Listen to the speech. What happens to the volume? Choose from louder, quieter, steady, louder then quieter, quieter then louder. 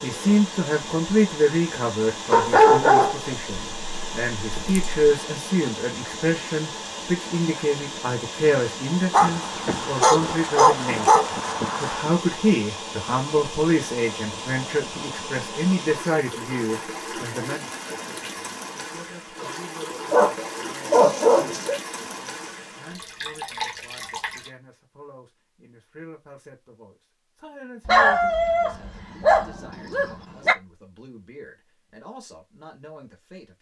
quieter.